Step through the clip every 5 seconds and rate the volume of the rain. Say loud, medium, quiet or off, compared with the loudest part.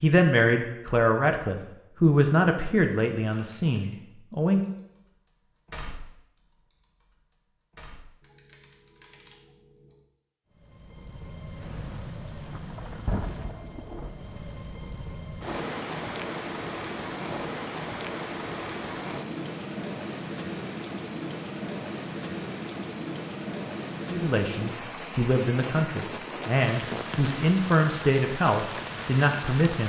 off, off, medium, loud, loud, loud.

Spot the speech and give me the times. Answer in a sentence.
The speech can be heard from 0.0 to 4.6 s and from 24.1 to 29.8 s.